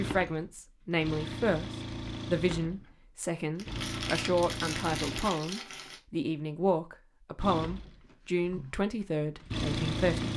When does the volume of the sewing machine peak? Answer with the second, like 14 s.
10 s.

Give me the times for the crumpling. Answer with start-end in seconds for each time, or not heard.
3.5-6.0.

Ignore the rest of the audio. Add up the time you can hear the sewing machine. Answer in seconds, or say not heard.
8 s.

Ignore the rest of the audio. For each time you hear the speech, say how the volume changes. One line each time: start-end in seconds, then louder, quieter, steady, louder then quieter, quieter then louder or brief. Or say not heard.
0.0-10.3 steady.